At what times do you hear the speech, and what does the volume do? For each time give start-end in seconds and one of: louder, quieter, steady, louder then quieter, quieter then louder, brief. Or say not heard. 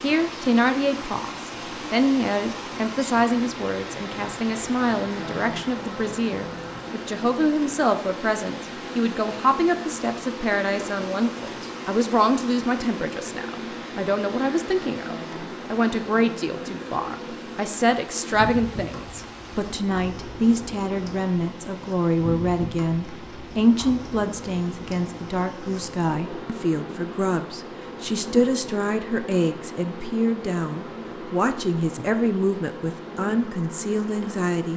0.0-34.7 steady.